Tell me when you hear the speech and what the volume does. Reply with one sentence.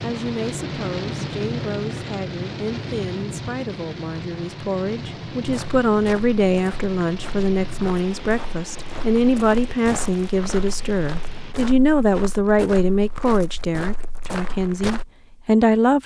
The speech can be heard from 0.0 to 16.0 s, getting louder.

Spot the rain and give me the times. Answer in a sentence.
You can hear the rain from 0.0 to 11.6 s.